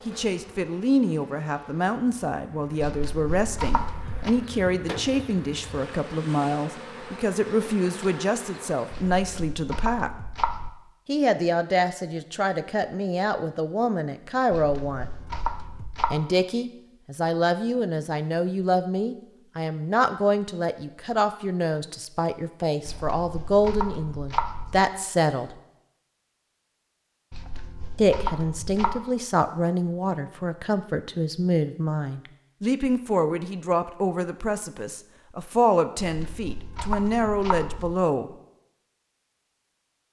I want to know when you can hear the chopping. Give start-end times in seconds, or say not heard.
2.8-4.3, 8.9-10.7, 14.5-16.1, 22.9-24.8, 27.3-29.0, 36.0-38.0.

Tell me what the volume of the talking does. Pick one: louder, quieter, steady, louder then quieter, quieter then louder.
steady.